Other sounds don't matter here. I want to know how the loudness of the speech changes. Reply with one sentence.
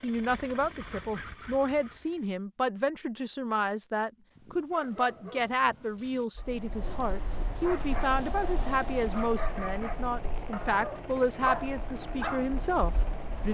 The volume of the speech stays about the same.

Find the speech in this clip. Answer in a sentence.
The speech can be heard from 0.0 to 13.4 s.